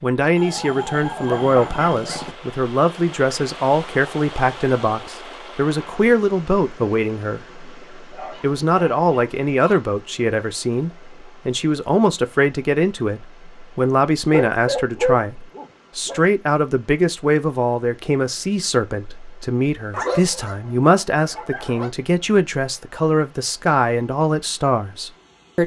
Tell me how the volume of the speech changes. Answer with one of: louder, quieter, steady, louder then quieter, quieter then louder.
steady.